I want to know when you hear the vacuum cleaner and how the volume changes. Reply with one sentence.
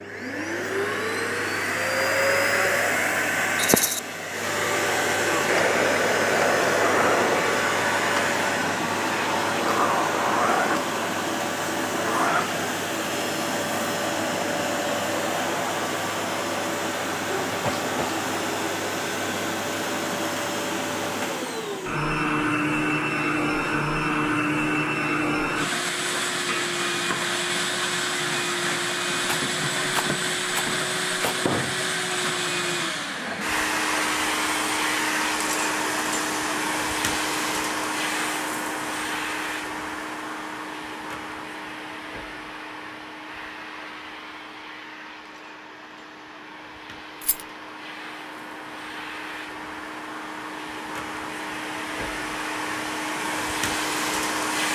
The vacuum cleaner can be heard from 0.0 to 54.7 s, getting quieter.